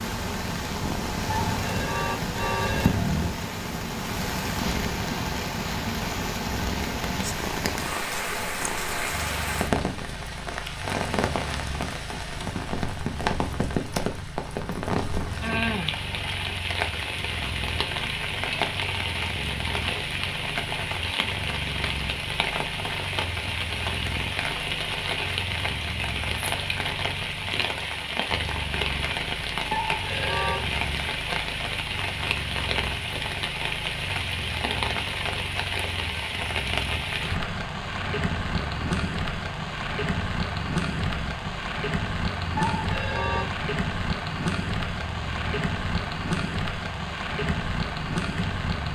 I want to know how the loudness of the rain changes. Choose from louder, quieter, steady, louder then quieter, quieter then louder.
steady.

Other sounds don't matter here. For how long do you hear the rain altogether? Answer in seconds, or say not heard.
49 s.